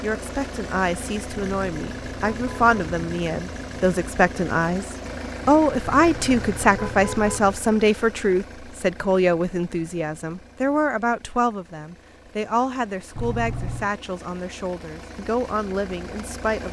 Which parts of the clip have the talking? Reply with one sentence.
You can hear the talking from 0.0 to 16.6 s.